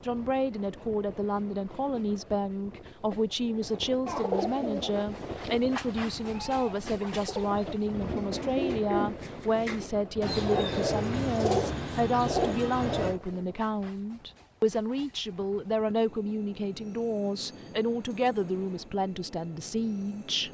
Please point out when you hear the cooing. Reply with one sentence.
You can hear the cooing from 4.0 to 13.2 s.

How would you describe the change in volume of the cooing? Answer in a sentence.
The loudness of the cooing goes up.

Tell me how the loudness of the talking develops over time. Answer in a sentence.
The volume of the talking stays about the same.